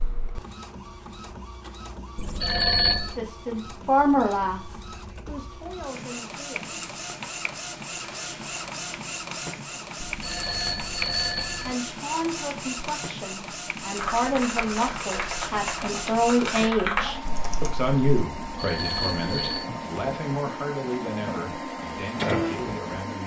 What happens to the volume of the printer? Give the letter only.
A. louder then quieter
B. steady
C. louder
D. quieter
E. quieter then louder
C.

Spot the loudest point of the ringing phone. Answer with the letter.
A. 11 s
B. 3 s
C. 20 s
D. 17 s
B.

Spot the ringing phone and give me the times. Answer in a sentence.
The ringing phone can be heard from 2.1 to 3.1 s, from 10.0 to 11.8 s and from 18.4 to 19.7 s.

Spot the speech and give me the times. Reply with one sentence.
The speech can be heard from 3.1 to 6.8 s and from 11.6 to 23.2 s.